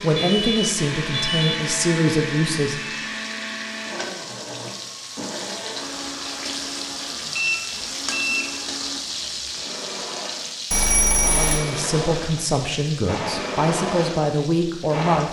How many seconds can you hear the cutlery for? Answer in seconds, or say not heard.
not heard.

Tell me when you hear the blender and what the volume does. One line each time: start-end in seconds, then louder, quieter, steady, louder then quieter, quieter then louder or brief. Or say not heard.
0.0-15.2 quieter then louder.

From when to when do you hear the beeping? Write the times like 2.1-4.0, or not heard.
0.1-1.6, 7.3-8.4, 10.7-11.6.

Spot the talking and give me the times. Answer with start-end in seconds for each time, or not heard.
0.0-2.8, 11.2-15.2.